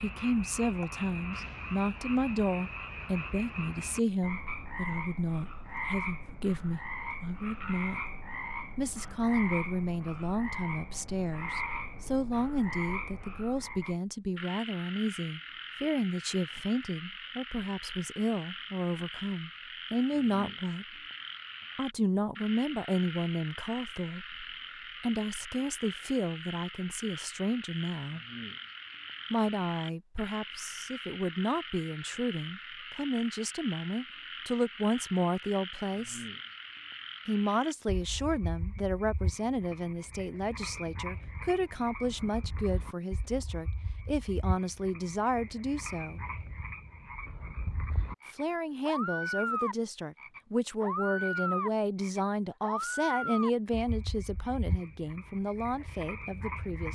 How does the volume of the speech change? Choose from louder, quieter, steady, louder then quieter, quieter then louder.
steady.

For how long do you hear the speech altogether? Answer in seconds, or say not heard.
51 s.